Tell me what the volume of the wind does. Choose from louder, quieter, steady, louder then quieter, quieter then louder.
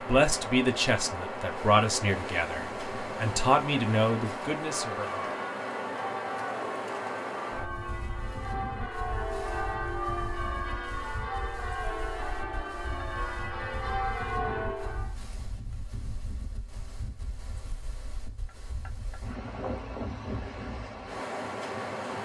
quieter then louder.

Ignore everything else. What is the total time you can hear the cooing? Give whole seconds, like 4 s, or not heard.
not heard.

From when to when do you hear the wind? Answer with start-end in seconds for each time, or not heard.
0.0-22.1.